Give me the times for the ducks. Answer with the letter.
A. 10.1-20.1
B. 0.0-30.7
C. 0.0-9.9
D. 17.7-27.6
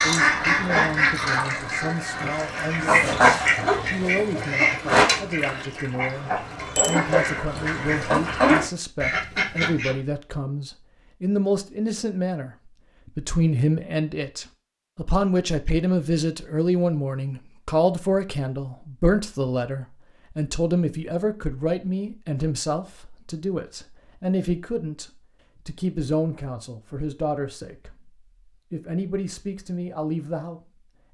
C.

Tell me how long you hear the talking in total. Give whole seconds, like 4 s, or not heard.
31 s.